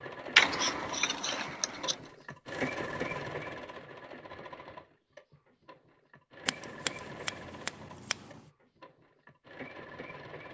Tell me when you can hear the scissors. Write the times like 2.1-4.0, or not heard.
0.3-2.0, 6.5-8.4.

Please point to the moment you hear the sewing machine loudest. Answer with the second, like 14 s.
3 s.